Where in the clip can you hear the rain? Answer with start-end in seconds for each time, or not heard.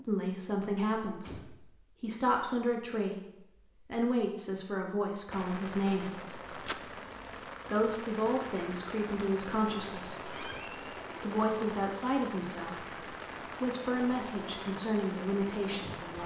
5.3-16.2.